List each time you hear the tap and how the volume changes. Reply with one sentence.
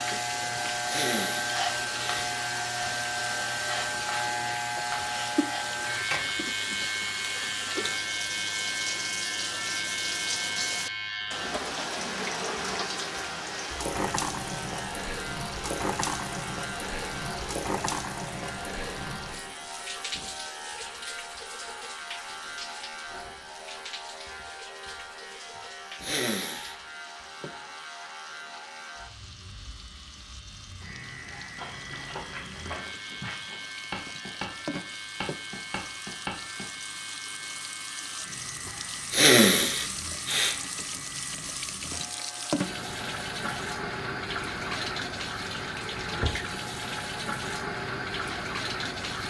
The tap can be heard from 0.0 to 49.2 s, getting quieter then louder.